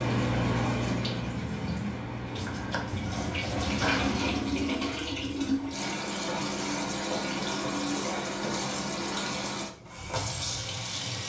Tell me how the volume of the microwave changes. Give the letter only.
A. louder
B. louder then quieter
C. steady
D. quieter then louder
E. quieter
E.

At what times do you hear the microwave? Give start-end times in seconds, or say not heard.
0.0-4.2.